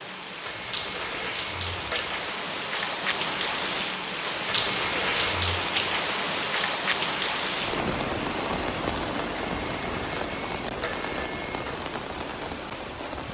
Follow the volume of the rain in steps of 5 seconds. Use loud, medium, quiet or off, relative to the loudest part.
loud, loud, medium.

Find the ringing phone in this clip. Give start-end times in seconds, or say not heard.
0.5-2.4, 4.5-5.5, 9.3-11.8.